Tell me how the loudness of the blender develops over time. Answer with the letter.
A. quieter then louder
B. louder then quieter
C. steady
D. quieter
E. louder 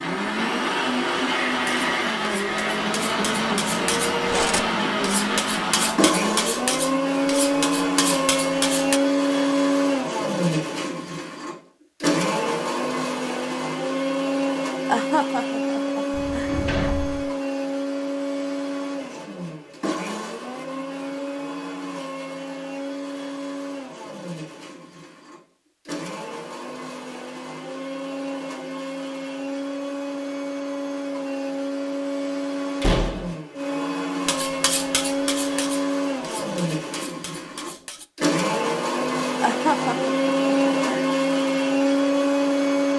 A.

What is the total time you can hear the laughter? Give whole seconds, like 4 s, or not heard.
3 s.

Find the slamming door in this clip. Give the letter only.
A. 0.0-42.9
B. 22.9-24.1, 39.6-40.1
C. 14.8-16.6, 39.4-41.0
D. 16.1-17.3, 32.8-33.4
D.